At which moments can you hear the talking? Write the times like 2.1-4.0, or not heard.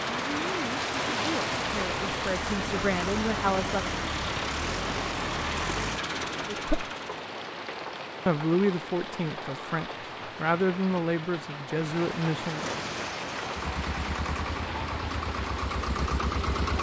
0.2-3.9, 6.5-6.9, 8.2-12.7.